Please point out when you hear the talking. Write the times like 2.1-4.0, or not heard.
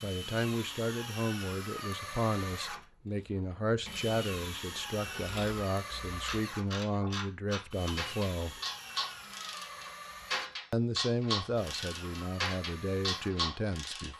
0.0-8.6, 10.7-14.1.